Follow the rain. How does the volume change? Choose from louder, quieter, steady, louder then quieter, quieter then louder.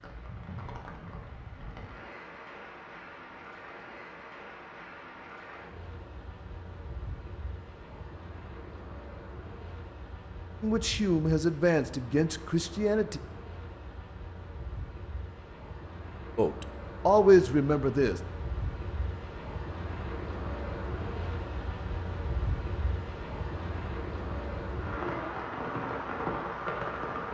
louder.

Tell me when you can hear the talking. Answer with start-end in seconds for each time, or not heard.
10.6-13.2, 16.4-18.2.